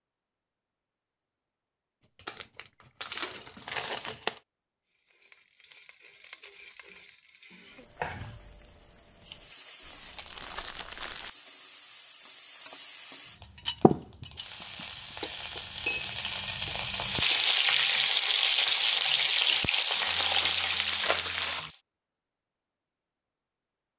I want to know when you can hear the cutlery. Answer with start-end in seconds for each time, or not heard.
13.4-19.2.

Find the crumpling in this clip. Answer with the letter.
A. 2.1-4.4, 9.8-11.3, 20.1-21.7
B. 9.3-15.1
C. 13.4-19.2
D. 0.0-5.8
A.